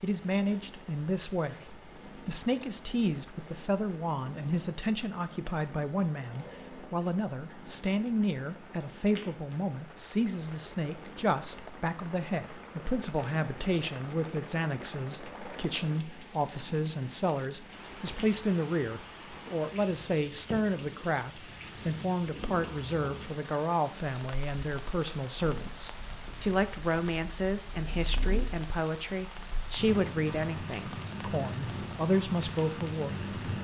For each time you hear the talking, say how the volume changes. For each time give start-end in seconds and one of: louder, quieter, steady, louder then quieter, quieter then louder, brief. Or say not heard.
0.0-33.2 steady.